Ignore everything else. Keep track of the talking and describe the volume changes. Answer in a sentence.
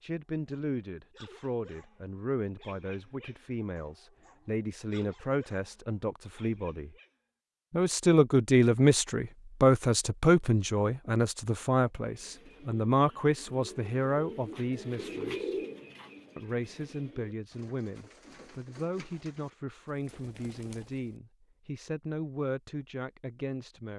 The volume of the talking goes up, then down.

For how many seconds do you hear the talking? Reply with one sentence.
The talking can be heard for 22 seconds in total.